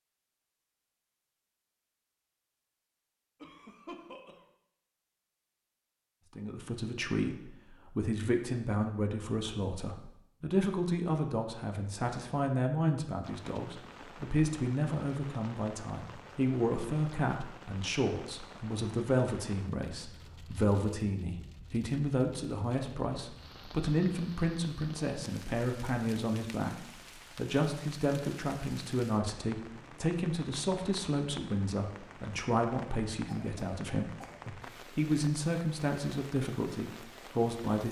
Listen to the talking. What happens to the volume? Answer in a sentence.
The volume of the talking stays about the same.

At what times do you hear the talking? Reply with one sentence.
The talking can be heard from 6.3 to 37.8 s.